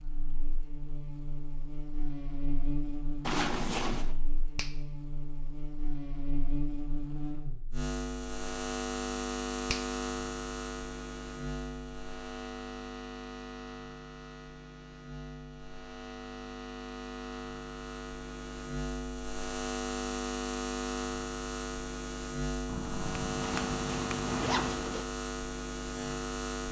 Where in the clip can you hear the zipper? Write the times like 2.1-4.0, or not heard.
3.2-4.2, 23.4-25.1.